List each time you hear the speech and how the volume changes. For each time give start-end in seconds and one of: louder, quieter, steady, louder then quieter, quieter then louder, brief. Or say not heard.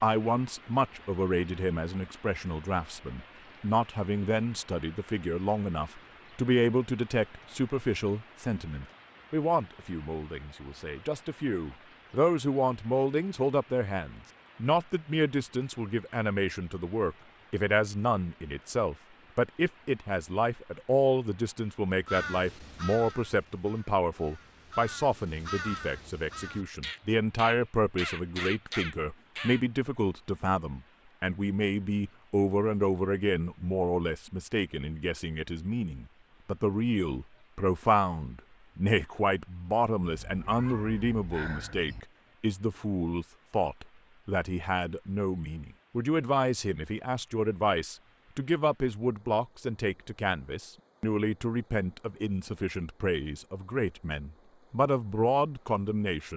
0.0-56.3 steady.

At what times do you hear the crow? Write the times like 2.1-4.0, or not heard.
22.1-29.6.